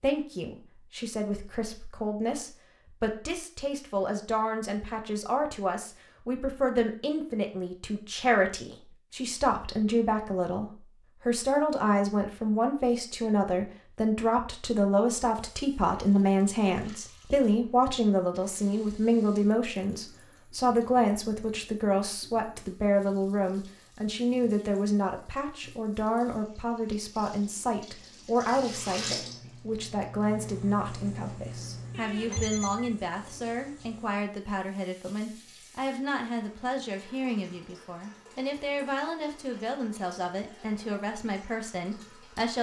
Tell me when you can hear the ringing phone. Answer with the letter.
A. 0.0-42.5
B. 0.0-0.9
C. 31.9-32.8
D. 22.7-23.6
C.